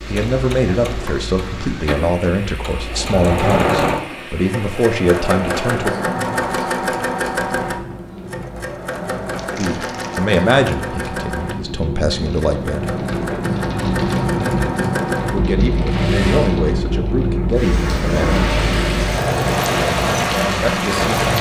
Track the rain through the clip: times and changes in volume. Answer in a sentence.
The rain can be heard from 0.0 to 21.3 s, getting louder.